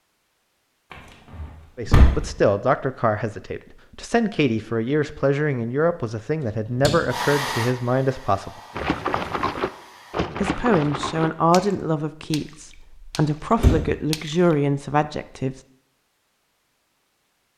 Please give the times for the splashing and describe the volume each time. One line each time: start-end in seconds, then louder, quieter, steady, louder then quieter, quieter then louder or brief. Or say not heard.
8.8-14.6 quieter then louder.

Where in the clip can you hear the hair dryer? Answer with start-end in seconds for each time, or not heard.
7.0-10.2.